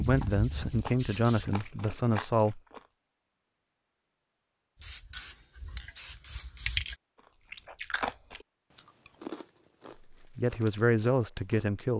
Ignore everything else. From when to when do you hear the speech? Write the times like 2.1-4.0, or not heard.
0.0-2.6, 10.1-11.9.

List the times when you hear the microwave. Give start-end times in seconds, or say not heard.
not heard.